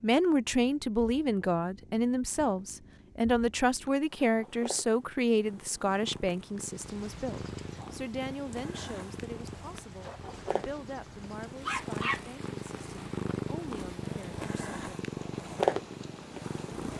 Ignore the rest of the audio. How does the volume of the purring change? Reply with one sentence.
The loudness of the purring goes up.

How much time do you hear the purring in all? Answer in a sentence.
You can hear the purring for 17 seconds altogether.